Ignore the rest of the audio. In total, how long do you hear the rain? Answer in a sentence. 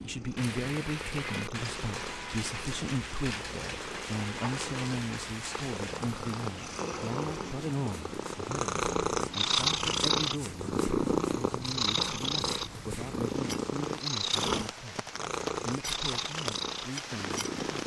You can hear the rain for 18 seconds altogether.